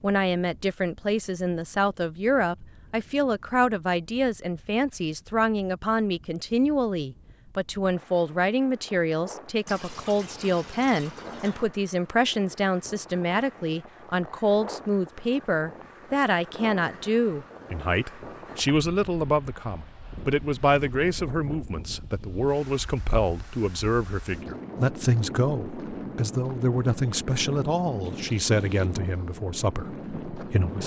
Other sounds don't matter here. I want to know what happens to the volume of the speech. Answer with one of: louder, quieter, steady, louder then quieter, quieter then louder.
steady.